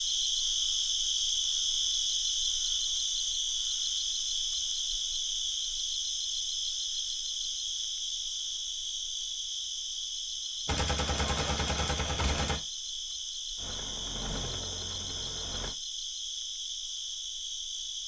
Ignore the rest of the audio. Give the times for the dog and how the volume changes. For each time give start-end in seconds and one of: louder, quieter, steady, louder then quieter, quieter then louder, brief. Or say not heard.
not heard.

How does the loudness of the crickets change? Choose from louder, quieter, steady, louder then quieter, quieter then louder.
quieter.